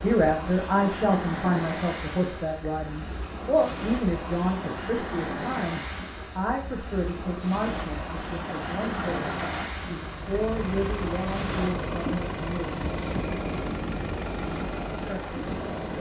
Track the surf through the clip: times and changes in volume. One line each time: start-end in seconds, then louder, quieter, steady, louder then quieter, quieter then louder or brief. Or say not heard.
0.0-15.9 steady.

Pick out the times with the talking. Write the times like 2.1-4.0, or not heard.
0.0-12.7, 15.0-15.9.